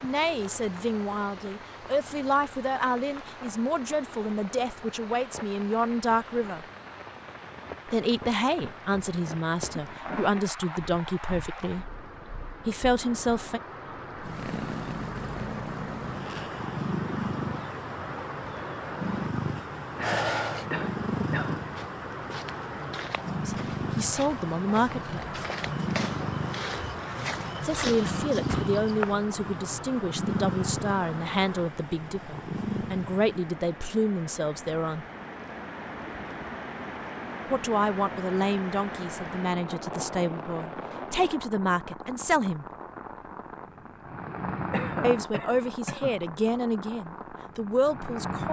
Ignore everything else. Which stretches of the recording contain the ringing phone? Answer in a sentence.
The ringing phone can be heard from 20.0 to 20.6 s.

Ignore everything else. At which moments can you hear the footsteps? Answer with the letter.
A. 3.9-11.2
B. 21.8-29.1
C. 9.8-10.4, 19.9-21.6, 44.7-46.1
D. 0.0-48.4
B.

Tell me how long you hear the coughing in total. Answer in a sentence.
The coughing can be heard for 4 seconds in total.